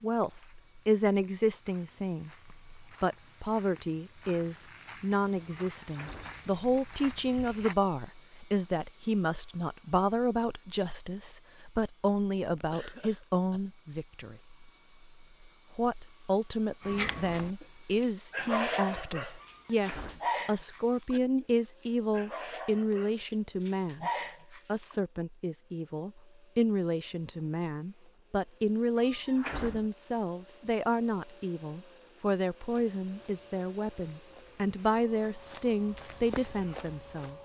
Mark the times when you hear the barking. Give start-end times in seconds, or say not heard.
16.8-24.9.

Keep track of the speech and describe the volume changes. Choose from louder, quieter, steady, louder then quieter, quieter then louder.
steady.